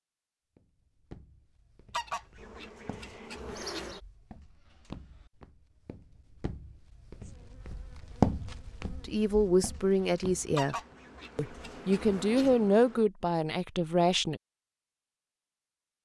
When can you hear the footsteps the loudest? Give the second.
8 s.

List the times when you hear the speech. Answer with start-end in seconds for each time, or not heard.
9.1-10.8, 11.3-14.4.